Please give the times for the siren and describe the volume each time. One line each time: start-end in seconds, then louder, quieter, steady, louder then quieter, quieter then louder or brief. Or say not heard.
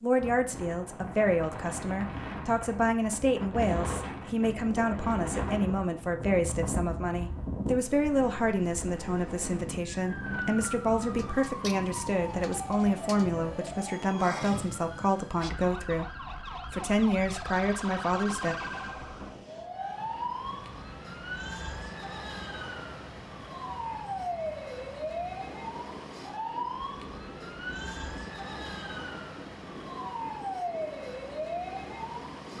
9.9-32.5 steady.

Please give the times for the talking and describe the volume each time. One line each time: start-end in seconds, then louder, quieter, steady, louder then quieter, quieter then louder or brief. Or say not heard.
0.0-18.6 steady.